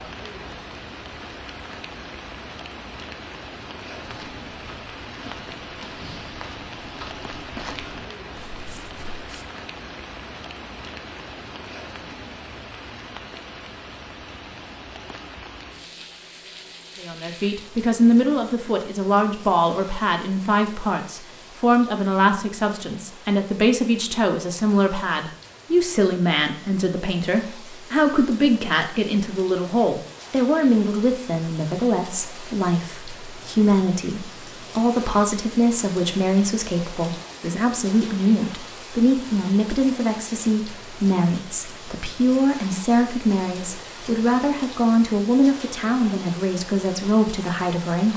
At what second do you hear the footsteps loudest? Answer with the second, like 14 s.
8 s.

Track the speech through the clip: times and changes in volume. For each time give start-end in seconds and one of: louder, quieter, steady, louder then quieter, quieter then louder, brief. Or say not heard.
17.0-48.1 steady.